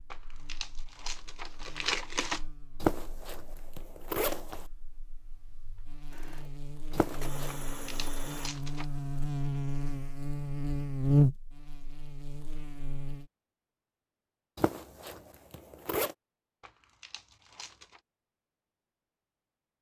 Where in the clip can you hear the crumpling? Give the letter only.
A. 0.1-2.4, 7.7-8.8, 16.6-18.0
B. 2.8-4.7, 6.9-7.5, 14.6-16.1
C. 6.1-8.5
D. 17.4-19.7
A.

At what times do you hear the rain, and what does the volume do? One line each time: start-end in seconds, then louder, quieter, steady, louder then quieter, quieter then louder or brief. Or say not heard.
not heard.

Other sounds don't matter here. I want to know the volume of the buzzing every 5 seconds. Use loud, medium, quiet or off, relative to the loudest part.
quiet, medium, loud, off.